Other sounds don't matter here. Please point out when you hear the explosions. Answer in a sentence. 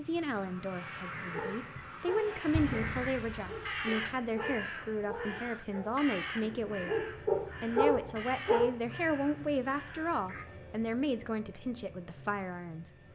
The explosions can be heard from 2.5 to 3.9 s.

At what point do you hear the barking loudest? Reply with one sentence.
The volume of the barking peaks at 8 seconds.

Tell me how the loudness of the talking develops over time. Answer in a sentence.
The volume of the talking stays about the same.